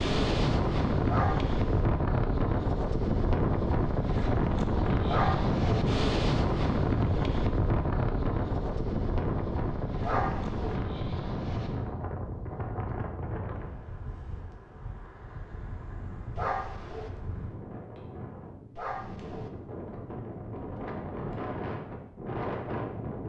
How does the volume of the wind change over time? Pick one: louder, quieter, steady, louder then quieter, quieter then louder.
quieter then louder.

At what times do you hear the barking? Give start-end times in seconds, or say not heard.
1.1-1.8, 5.0-5.5, 10.0-10.8, 16.4-17.1, 18.8-19.5.